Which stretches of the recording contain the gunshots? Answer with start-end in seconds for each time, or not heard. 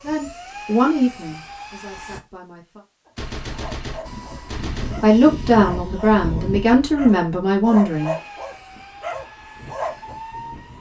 3.1-5.0.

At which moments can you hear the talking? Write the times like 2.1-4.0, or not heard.
0.0-2.9, 4.8-8.2.